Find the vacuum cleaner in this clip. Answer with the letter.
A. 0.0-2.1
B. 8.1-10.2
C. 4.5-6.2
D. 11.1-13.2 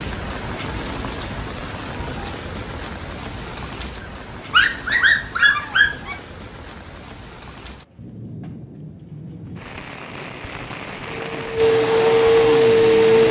D.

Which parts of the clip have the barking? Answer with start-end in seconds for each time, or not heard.
4.5-6.2.